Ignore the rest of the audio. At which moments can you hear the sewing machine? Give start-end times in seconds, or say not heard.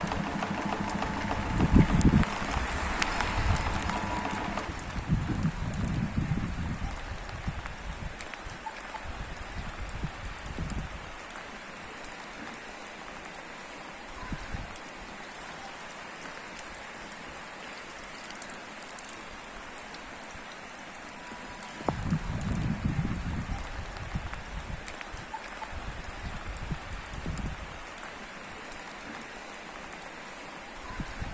0.0-5.5.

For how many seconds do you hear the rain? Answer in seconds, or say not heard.
31 s.